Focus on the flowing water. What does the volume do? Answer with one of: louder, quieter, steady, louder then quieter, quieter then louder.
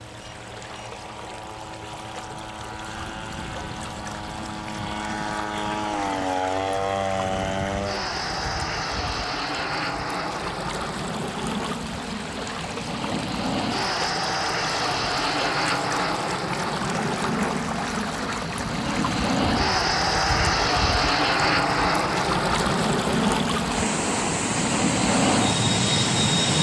louder.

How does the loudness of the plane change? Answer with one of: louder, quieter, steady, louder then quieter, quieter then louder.
louder.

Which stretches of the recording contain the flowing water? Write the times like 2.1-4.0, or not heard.
0.0-26.5.